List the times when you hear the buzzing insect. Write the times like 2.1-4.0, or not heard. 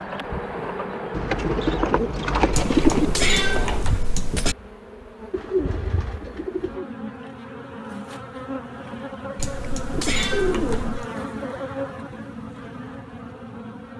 0.0-13.9.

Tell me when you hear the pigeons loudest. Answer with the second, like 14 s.
3 s.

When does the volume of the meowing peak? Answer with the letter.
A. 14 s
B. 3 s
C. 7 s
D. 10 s
B.